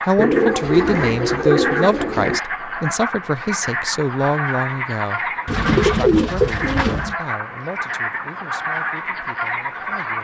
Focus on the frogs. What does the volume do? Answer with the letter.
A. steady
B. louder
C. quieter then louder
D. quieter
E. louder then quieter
A.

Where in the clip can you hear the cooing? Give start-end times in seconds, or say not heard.
0.1-2.4, 5.5-7.2.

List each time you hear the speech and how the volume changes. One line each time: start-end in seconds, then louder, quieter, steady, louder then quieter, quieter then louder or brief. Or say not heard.
0.1-10.1 quieter.